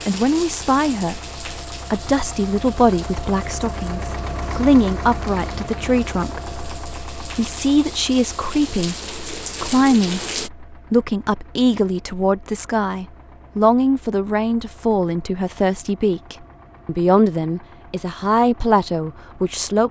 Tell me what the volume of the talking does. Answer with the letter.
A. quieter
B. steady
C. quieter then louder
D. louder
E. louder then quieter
B.